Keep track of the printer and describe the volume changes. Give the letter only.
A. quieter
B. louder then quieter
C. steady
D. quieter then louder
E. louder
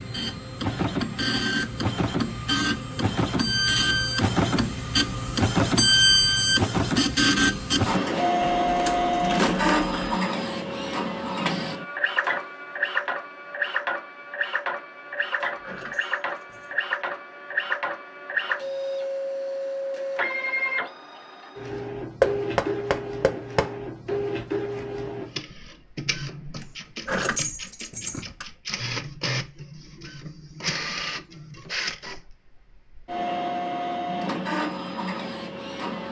A.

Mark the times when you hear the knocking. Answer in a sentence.
The knocking can be heard from 22.2 to 23.8 s.